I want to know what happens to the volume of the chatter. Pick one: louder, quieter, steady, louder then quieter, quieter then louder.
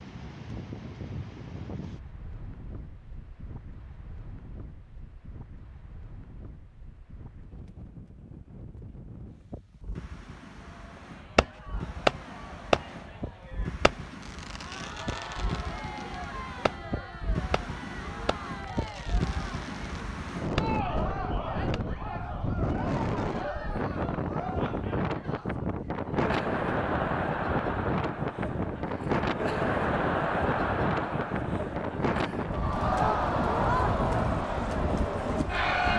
louder.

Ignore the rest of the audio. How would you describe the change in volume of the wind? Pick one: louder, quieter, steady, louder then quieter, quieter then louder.
louder.